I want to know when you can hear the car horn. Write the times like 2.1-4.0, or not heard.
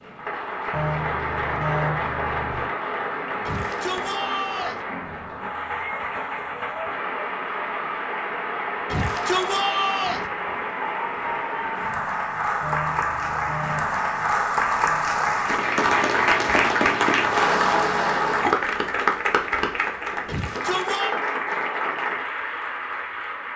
0.7-2.7, 12.6-14.1.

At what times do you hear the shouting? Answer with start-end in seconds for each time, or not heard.
3.5-4.8, 8.8-10.2, 20.2-21.1.